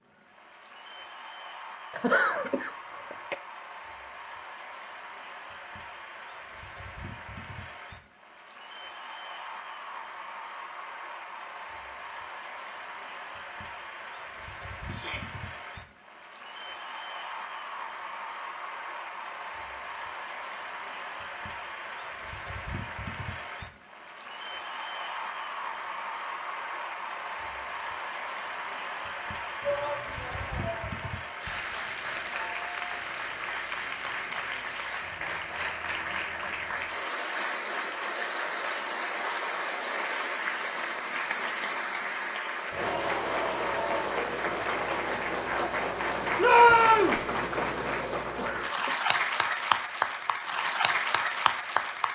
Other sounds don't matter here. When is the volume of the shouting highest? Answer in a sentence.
The loudest moment of the shouting is at 47 seconds.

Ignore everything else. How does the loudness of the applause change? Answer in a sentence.
The volume of the applause goes up.